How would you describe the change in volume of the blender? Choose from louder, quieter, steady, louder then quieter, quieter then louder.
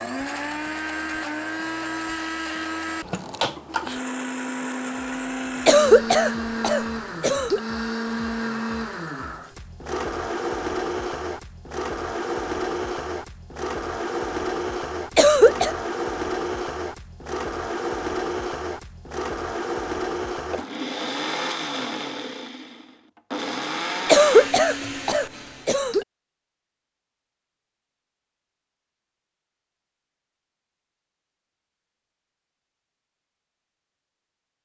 steady.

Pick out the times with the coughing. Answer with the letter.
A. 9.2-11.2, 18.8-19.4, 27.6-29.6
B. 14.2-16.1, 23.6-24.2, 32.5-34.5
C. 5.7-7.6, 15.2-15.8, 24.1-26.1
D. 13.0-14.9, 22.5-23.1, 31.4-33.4
C.